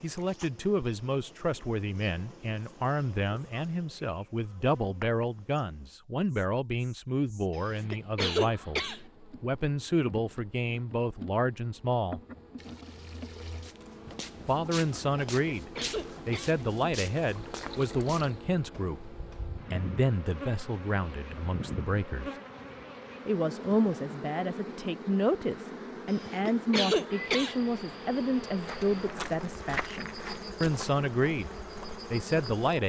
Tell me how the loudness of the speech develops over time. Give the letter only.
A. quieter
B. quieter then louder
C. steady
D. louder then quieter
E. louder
C.